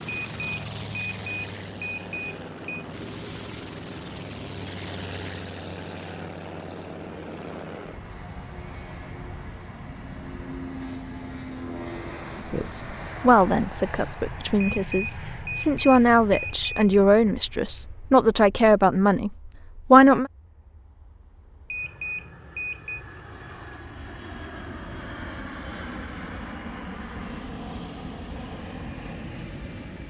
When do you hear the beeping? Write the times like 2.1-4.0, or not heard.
0.1-2.9, 14.6-16.9, 21.7-23.1.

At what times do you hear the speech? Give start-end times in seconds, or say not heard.
12.5-20.3.